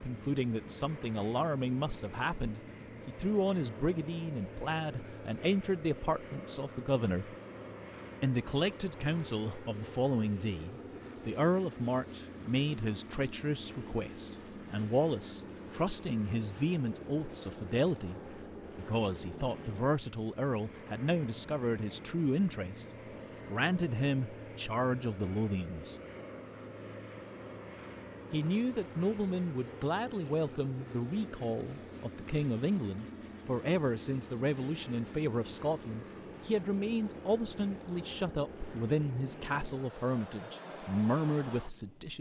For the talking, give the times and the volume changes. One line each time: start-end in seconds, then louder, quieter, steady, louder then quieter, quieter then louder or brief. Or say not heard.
0.0-7.3 steady
8.2-22.9 steady
23.5-25.9 brief
28.3-42.1 steady.